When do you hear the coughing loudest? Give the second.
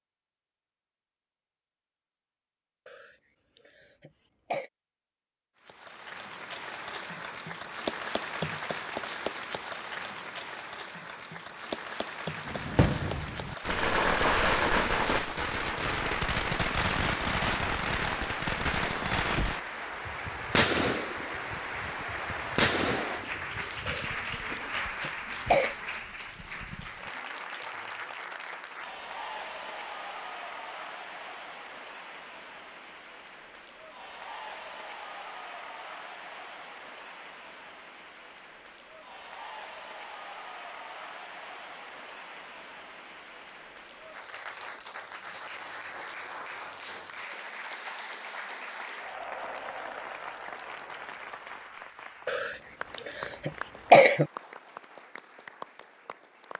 54 s.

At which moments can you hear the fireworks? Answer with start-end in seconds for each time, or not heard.
12.4-24.6.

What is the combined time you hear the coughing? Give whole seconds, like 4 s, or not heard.
6 s.